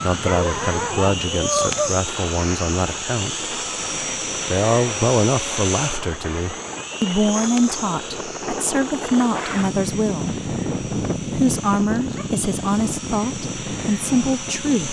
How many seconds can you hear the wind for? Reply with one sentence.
You can hear the wind for 15 seconds altogether.